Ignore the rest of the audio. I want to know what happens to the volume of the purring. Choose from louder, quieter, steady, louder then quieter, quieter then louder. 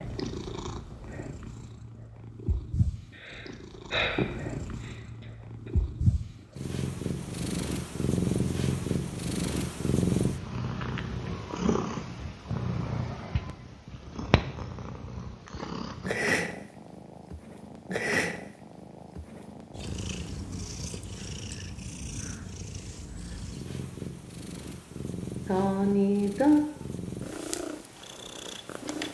louder then quieter.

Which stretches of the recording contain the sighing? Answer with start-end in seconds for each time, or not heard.
3.1-5.0, 25.4-26.6.